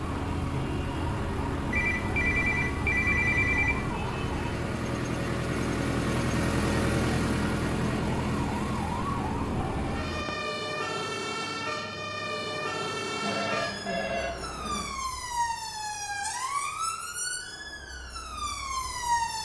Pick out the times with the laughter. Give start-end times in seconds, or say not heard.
13.2-14.9.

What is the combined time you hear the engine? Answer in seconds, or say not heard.
10 s.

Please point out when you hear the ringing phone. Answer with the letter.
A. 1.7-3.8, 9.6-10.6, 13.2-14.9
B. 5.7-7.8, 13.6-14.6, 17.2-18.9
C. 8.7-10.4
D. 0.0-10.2
A.